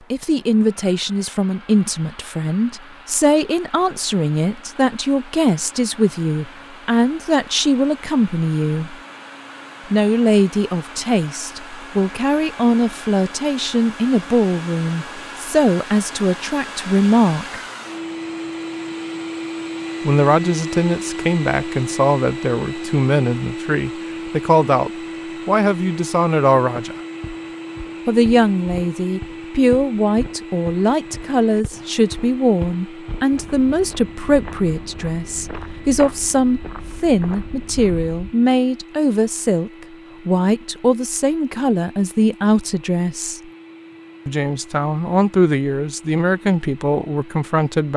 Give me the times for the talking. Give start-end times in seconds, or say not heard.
0.1-8.9, 9.9-17.6, 20.0-26.9, 28.1-43.4, 44.2-47.9.